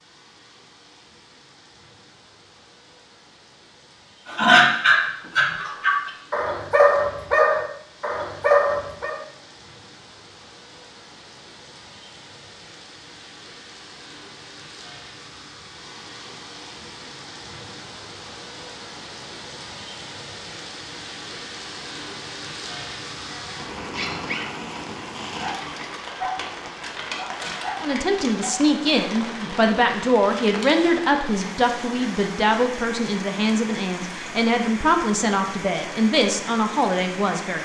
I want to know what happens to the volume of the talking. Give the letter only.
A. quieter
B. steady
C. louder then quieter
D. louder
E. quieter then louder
B.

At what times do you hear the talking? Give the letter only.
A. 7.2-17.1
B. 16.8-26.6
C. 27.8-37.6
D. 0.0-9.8
C.